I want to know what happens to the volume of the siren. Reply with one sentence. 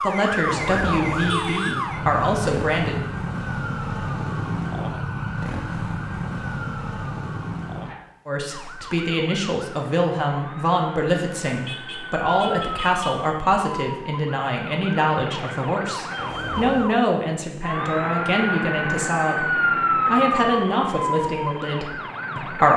The loudness of the siren goes down, then up.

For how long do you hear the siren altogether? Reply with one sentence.
The siren can be heard for 23 seconds in total.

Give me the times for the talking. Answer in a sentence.
You can hear the talking from 0.0 to 3.0 s and from 8.2 to 22.7 s.